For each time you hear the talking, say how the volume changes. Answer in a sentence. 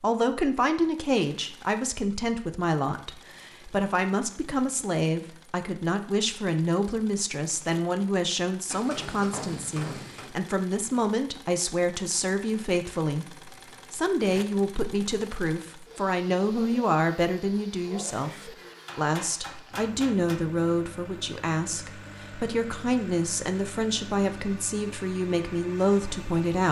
You can hear the talking from 0.0 to 26.6 s, at a steady volume.